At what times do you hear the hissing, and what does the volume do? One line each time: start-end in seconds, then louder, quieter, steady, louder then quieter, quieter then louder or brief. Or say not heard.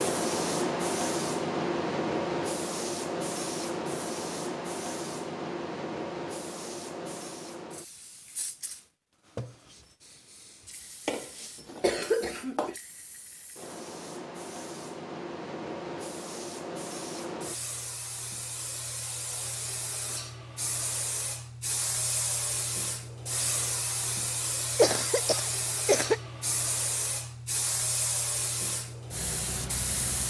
0.0-30.2 quieter then louder.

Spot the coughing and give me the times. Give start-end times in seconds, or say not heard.
11.1-12.8, 24.8-26.2.